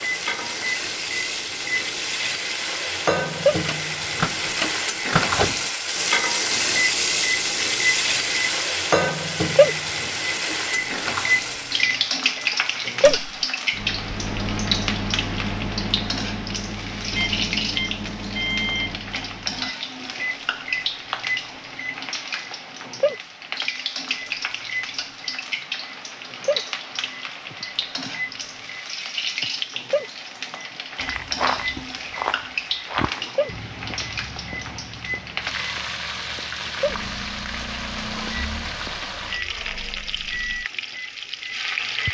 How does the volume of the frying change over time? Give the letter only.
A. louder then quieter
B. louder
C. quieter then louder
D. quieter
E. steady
D.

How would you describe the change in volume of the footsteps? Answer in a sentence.
The volume of the footsteps goes down.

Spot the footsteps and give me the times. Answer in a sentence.
You can hear the footsteps from 31.0 to 39.0 s.